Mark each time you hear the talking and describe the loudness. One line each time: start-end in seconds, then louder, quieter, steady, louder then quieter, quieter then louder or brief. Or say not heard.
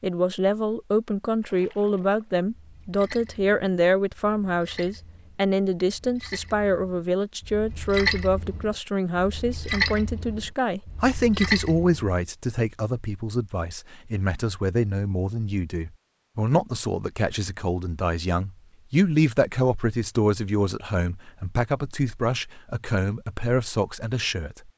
0.0-24.7 steady.